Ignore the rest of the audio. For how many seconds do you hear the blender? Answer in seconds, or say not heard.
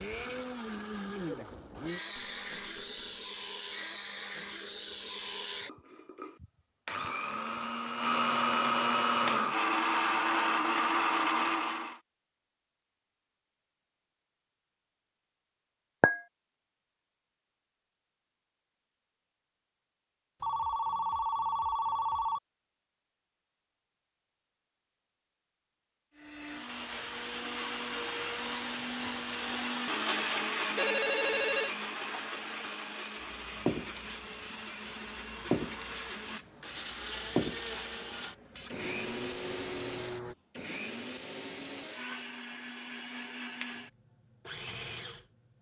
31 s.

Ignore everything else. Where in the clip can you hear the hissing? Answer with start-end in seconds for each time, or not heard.
26.6-40.4.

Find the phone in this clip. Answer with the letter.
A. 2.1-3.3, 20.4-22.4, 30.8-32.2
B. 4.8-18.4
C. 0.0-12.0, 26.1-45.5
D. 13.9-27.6
A.